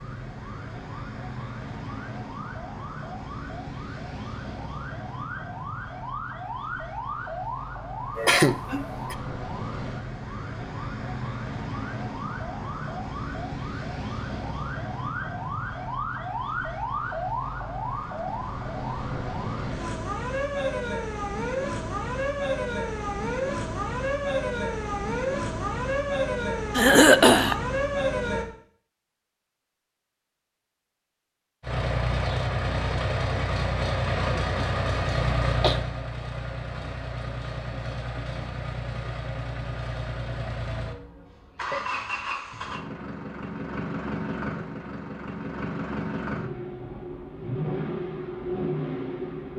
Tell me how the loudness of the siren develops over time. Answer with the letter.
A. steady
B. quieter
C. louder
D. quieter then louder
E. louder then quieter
C.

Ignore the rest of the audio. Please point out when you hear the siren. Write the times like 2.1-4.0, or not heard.
0.0-28.4.